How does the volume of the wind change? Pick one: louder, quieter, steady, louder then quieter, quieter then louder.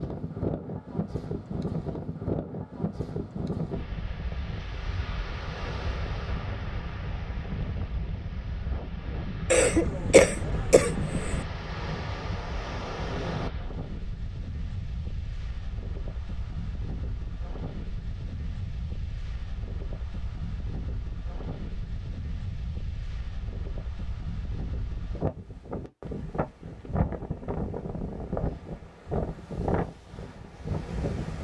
quieter then louder.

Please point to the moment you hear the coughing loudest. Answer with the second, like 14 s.
10 s.